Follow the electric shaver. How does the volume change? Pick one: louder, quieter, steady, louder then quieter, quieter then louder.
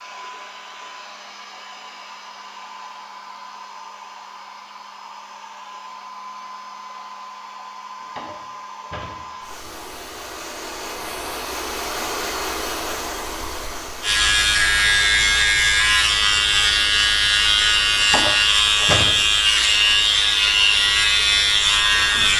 steady.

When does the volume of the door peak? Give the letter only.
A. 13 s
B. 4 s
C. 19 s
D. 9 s
C.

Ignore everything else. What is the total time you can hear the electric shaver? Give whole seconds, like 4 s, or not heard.
8 s.